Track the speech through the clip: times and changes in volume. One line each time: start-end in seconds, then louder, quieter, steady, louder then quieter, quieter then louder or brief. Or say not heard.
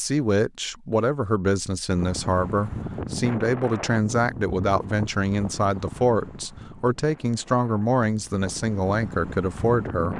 0.0-10.1 steady.